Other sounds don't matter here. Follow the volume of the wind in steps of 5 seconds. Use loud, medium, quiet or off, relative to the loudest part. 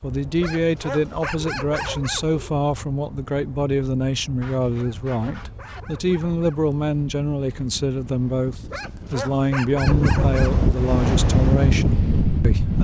quiet, quiet, loud.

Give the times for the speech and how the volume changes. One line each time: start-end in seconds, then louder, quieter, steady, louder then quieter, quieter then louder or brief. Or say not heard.
0.0-12.7 steady.